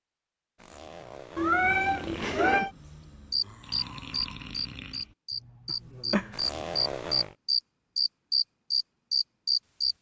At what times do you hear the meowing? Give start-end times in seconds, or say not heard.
1.4-2.7, 5.7-6.3.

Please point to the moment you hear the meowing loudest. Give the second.
2 s.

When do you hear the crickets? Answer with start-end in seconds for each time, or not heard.
3.3-9.9.